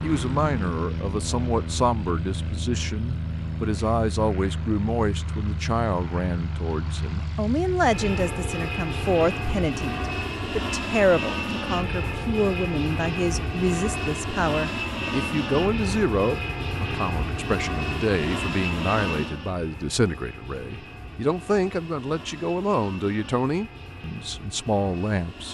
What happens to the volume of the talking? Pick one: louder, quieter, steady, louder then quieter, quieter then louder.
steady.